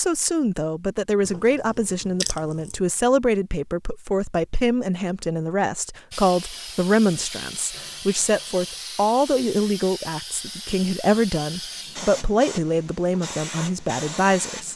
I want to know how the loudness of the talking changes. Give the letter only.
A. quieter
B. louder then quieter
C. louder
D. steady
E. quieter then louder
D.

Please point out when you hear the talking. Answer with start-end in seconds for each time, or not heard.
0.0-14.7.